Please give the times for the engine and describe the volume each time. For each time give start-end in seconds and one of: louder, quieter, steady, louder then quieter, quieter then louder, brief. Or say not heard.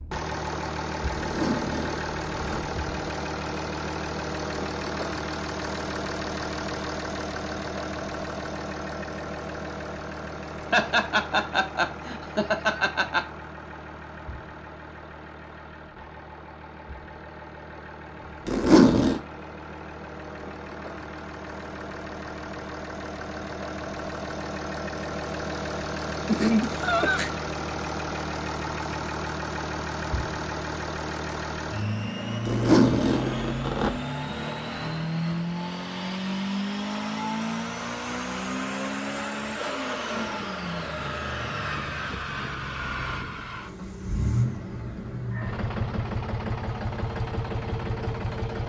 0.0-48.6 quieter then louder.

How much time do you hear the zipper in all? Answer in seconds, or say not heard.
4 s.